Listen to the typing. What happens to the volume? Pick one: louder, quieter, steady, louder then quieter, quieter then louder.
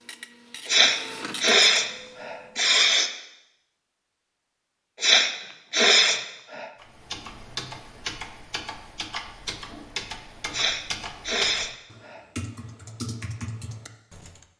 steady.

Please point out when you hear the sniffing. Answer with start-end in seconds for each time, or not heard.
0.7-3.1, 5.0-6.7, 10.5-12.2.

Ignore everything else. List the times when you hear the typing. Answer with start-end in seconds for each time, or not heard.
6.8-14.4.